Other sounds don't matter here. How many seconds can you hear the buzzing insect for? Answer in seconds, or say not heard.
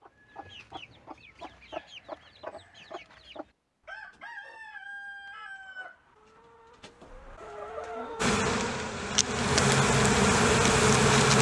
3 s.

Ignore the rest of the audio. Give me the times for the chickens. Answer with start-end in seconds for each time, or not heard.
0.0-9.0.